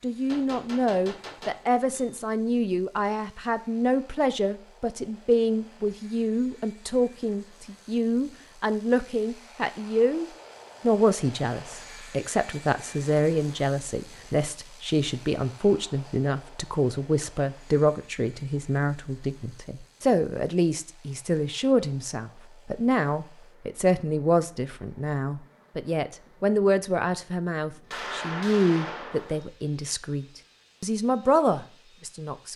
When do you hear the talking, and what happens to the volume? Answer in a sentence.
You can hear the talking from 0.0 to 32.5 s, at a steady volume.